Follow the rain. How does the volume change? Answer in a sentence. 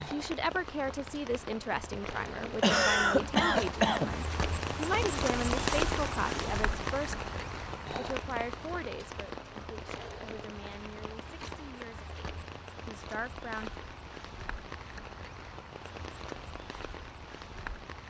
The loudness of the rain goes up, then down.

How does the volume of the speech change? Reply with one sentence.
The loudness of the speech goes down.